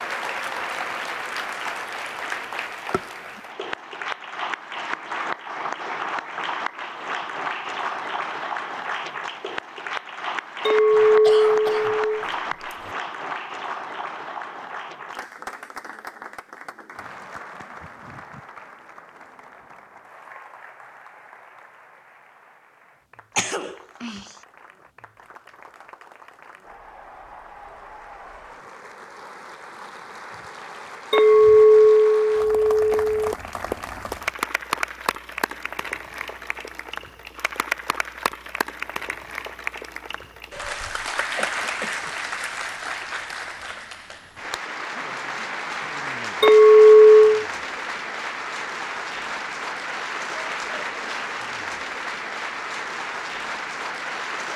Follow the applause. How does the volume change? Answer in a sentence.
The loudness of the applause goes down, then up.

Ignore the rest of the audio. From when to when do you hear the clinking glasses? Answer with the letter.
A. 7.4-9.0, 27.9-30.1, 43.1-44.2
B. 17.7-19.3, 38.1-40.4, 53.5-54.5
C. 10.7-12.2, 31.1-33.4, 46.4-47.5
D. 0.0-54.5
C.